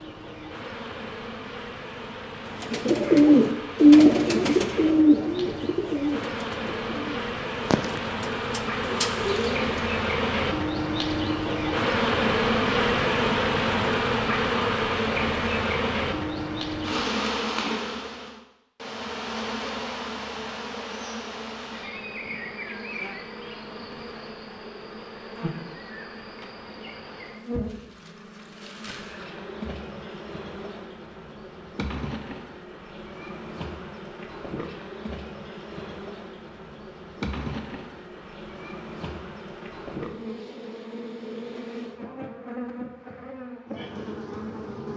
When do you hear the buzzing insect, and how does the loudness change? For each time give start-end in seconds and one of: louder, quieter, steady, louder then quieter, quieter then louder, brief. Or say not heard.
0.0-44.9 louder then quieter.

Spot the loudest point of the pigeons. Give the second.
4 s.